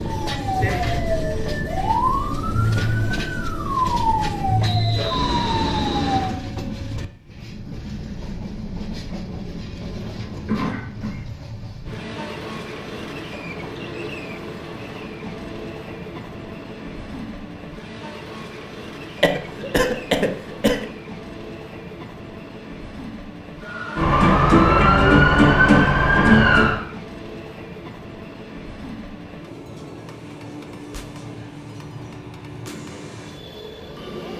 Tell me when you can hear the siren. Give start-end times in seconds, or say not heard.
0.0-6.4, 23.6-26.8.